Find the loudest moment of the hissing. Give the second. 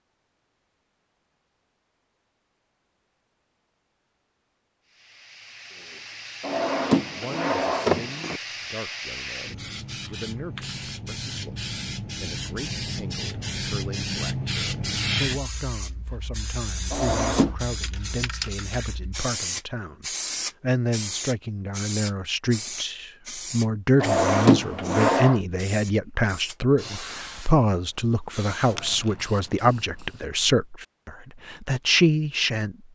15 s.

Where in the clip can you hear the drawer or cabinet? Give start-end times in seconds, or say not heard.
6.4-8.4, 16.9-17.6, 24.0-25.4.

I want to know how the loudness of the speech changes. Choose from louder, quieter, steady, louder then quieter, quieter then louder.
louder.